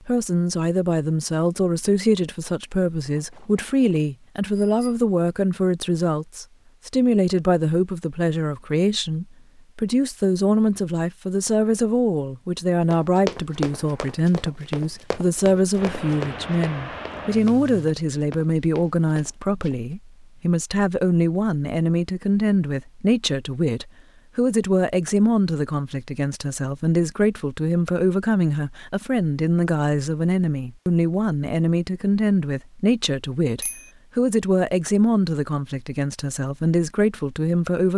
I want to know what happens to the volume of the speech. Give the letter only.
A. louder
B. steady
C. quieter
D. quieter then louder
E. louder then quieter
B.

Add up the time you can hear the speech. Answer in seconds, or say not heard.
38 s.